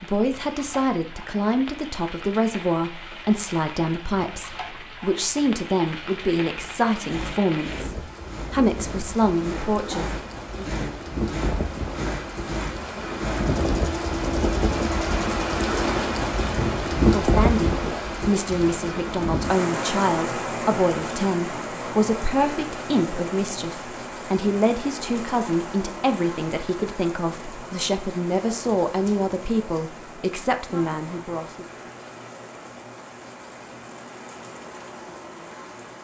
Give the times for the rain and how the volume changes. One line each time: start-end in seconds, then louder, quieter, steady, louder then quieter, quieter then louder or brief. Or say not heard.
0.0-35.9 louder then quieter.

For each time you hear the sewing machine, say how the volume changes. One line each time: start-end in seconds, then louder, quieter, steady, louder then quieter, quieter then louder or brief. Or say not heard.
6.5-15.6 louder.